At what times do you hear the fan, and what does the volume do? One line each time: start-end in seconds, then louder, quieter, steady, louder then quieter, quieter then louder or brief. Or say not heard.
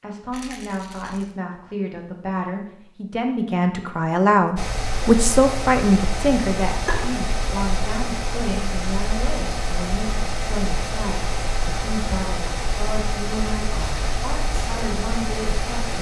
4.5-15.9 steady.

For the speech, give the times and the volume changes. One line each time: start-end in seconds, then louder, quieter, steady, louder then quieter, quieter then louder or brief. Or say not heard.
0.0-15.9 louder then quieter.